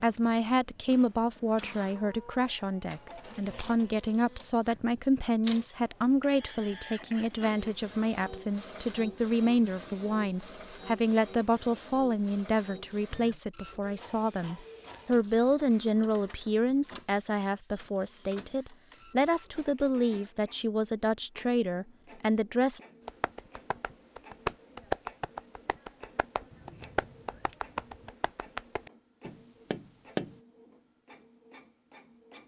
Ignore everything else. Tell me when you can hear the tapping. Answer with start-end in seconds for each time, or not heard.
23.1-30.4.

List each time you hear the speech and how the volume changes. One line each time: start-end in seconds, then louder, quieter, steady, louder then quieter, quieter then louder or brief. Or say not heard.
0.0-22.8 steady.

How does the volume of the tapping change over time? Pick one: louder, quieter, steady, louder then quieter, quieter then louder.
quieter.